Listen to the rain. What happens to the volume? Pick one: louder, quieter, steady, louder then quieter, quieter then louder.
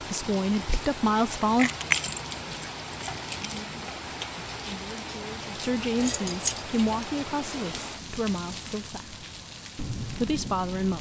steady.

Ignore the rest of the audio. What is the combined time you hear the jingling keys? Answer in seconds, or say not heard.
3 s.